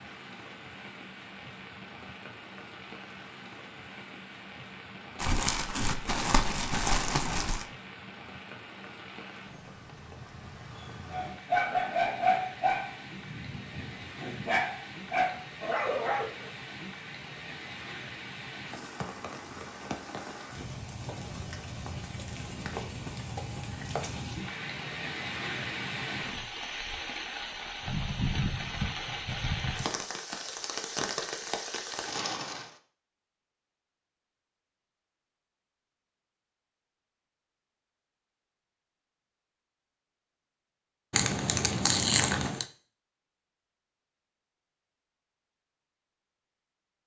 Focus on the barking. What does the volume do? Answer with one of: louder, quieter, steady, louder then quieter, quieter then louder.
quieter then louder.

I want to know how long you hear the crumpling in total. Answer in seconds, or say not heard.
4 s.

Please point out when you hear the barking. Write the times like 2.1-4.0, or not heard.
11.1-16.5.